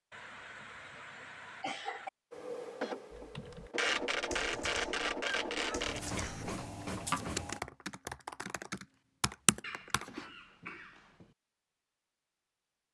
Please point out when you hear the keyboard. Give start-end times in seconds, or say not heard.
3.1-10.2.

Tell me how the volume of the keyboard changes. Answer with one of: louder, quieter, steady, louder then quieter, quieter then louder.
louder.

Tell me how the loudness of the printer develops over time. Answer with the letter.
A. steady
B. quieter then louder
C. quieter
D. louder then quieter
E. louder
D.